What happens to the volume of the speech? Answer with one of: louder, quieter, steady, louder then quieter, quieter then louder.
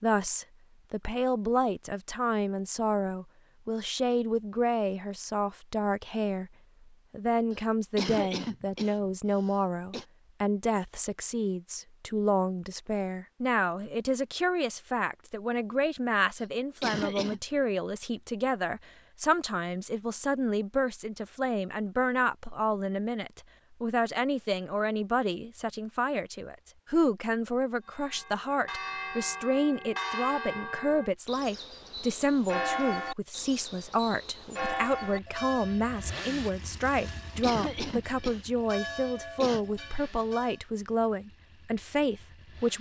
steady.